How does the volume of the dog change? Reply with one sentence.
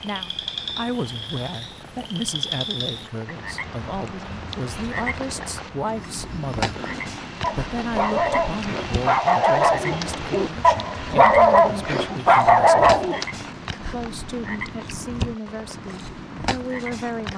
The loudness of the dog goes up.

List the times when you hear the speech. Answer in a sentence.
You can hear the speech from 0.0 to 6.8 s, from 7.5 to 12.9 s and from 13.9 to 17.3 s.